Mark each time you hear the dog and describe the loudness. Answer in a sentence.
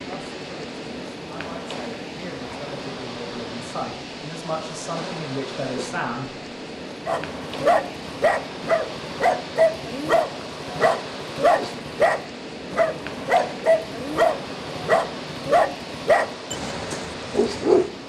You can hear the dog from 7.0 to 17.9 s, at a steady volume.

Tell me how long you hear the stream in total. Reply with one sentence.
You can hear the stream for 18 seconds altogether.